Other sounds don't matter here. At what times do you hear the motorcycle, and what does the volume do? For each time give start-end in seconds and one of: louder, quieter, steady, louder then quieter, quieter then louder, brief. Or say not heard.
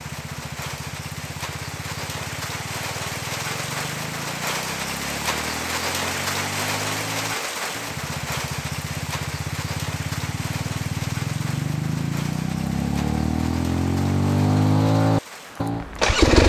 0.0-16.4 louder.